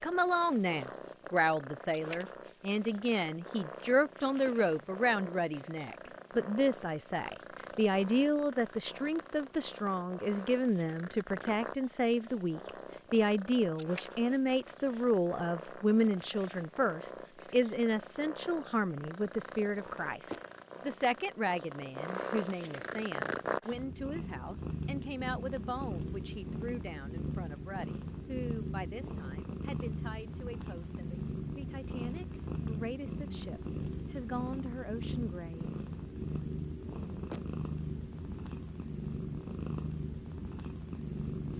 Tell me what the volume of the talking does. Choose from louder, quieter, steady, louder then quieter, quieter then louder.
quieter.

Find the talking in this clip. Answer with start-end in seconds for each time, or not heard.
0.0-35.8.